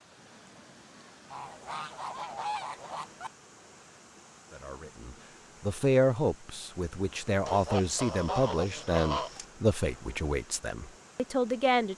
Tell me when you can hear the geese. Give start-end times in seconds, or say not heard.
1.3-3.3, 7.5-9.4.